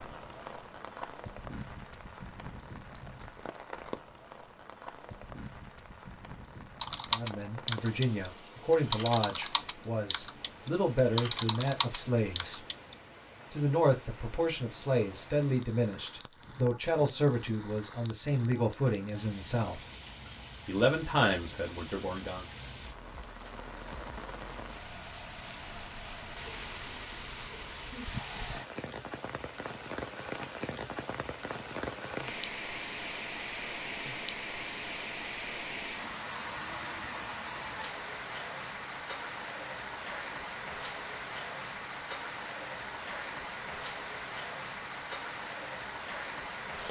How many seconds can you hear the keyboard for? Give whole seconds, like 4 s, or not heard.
5 s.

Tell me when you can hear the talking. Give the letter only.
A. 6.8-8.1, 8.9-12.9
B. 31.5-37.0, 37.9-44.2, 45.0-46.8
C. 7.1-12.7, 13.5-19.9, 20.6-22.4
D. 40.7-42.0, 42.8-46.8
C.